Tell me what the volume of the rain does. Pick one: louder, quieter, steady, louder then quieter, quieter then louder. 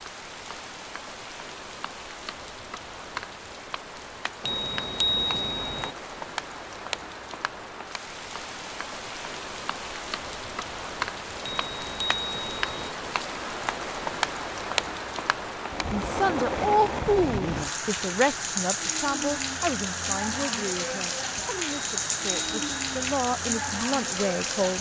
louder.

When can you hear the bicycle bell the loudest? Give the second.
5 s.